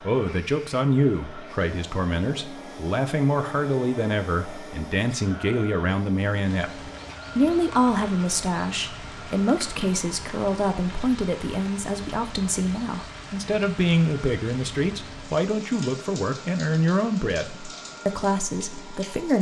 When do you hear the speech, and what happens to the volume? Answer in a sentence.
The speech can be heard from 0.1 to 19.3 s, at a steady volume.